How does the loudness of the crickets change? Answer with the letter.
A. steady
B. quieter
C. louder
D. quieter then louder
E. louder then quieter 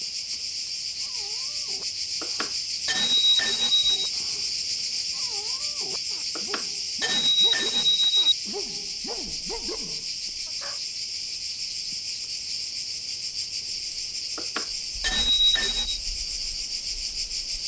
A.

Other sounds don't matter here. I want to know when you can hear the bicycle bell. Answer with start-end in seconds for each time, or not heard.
2.2-4.1, 6.3-8.3, 14.3-16.0.